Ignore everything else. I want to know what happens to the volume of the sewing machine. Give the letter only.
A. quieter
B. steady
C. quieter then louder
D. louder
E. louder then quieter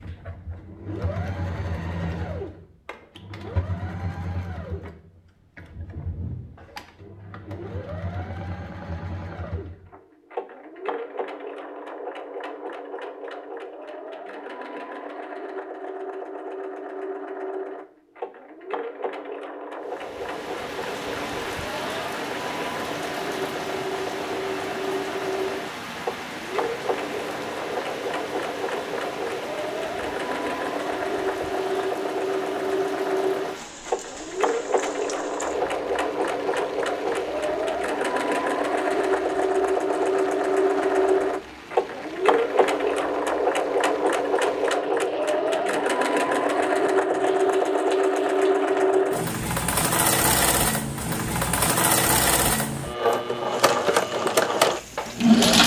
D.